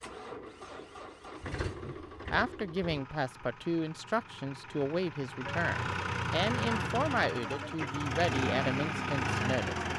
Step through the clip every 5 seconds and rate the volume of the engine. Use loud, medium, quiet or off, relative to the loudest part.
medium, loud.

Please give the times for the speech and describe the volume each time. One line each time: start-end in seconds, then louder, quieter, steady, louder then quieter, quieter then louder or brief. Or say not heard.
1.8-9.8 steady.